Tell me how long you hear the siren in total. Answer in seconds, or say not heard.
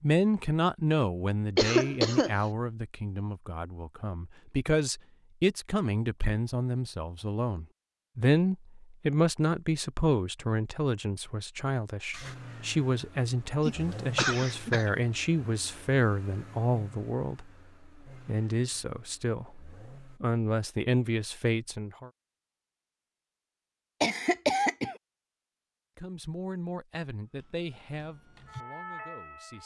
2 s.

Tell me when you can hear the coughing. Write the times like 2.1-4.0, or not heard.
1.6-2.4, 13.7-14.9, 24.0-24.9.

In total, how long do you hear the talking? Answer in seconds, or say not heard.
26 s.